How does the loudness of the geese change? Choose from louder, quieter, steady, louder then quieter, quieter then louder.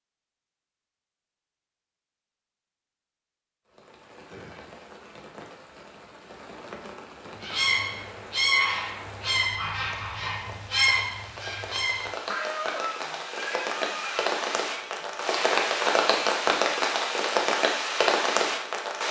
quieter.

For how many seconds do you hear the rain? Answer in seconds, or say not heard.
15 s.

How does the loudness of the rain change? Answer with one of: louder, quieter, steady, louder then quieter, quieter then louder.
louder.